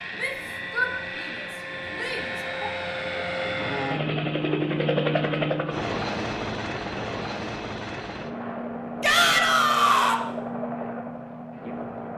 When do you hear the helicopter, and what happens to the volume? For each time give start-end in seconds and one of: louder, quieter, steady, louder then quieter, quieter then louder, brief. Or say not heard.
0.0-12.1 louder then quieter.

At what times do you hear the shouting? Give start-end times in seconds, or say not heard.
0.1-2.7, 9.0-10.2.